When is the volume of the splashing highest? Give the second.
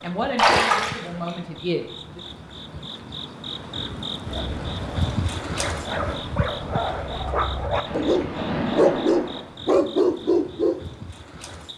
1 s.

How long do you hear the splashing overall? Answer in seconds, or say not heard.
2 s.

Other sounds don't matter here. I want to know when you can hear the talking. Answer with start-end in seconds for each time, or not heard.
0.0-2.2.